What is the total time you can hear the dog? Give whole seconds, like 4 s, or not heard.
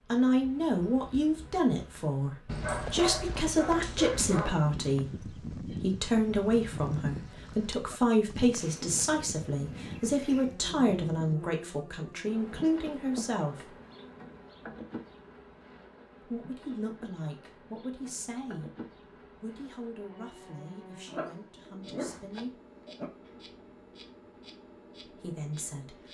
4 s.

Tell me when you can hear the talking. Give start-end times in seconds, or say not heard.
0.1-13.8, 16.2-18.7, 19.4-22.6, 25.0-26.1.